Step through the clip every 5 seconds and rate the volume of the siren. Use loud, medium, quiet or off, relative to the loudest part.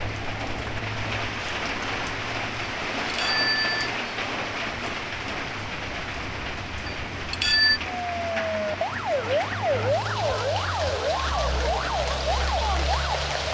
quiet, loud, loud.